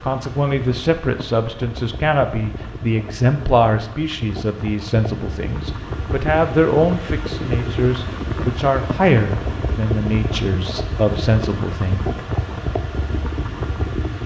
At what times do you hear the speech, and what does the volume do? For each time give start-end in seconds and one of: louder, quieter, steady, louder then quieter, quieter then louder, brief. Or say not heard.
0.0-12.1 steady.